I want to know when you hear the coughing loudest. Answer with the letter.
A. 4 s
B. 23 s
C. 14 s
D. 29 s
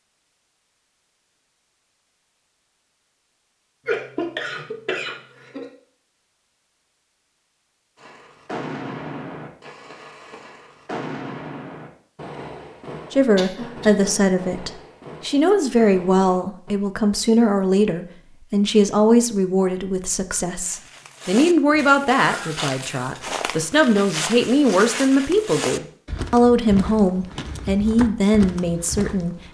A.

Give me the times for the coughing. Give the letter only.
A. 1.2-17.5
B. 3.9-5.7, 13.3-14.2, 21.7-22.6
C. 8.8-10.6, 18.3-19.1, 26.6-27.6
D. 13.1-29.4
B.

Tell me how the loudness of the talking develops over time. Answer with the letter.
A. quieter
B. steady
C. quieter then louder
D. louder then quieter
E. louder
B.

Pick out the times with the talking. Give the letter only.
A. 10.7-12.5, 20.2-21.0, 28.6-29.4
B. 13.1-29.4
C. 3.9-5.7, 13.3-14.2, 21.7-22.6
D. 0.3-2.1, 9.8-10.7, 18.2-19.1
B.